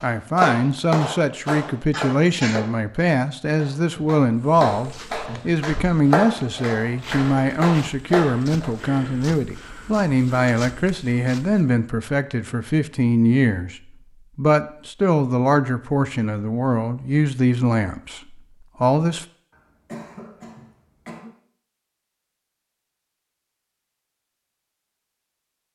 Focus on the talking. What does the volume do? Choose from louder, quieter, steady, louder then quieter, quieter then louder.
steady.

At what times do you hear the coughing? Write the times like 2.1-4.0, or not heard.
1.9-2.6, 19.5-21.3.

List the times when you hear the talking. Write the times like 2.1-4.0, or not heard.
0.0-19.2.